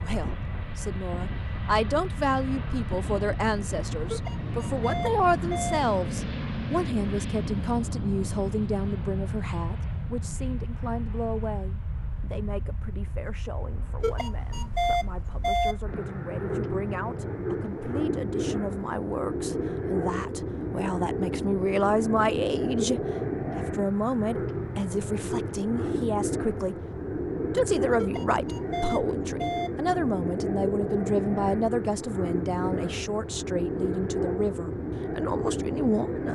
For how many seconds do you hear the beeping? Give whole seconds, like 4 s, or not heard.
5 s.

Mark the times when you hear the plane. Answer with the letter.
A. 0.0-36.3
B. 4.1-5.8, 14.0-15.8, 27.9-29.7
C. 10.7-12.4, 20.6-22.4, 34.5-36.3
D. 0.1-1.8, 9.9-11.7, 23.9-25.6
A.